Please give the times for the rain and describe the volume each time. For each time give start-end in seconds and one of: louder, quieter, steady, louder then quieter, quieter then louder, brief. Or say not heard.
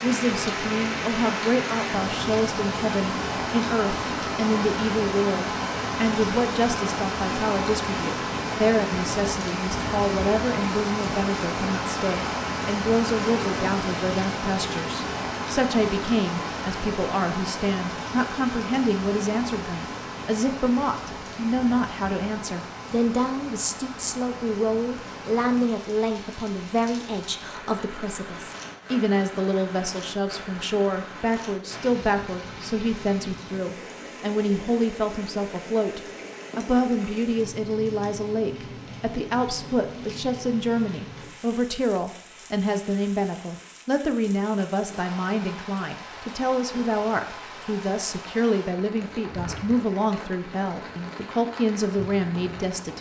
0.0-52.9 quieter.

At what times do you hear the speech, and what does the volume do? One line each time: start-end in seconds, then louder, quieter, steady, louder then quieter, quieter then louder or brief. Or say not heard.
0.0-52.9 steady.